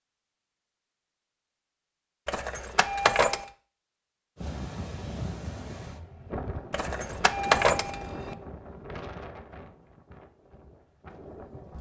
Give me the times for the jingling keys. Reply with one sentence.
The jingling keys can be heard from 2.2 to 3.5 s and from 6.7 to 8.3 s.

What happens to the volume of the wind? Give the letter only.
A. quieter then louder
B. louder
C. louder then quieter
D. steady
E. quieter
E.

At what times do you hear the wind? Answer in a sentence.
The wind can be heard from 4.3 to 11.7 s.